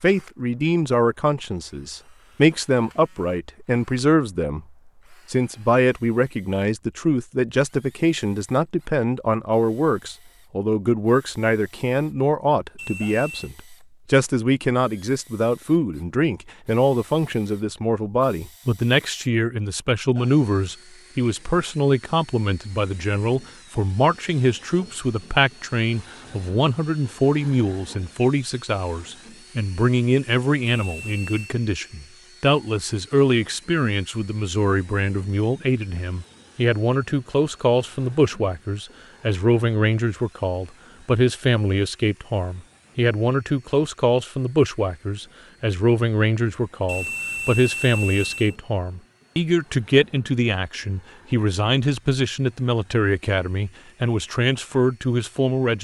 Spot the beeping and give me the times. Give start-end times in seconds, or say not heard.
12.8-13.5, 30.8-31.6, 46.9-48.5.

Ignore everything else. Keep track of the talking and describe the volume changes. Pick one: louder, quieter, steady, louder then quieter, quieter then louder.
steady.